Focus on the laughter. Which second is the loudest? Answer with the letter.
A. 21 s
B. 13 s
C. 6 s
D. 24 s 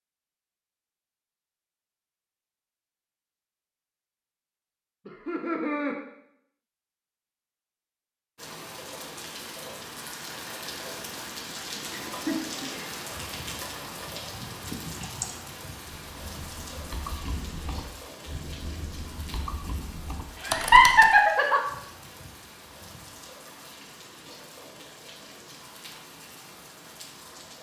A.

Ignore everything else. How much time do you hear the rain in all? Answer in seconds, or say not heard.
19 s.